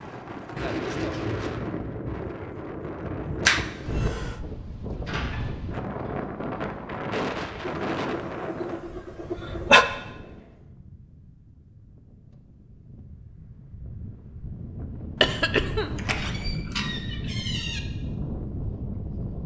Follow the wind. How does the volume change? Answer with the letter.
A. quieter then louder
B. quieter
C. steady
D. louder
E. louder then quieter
A.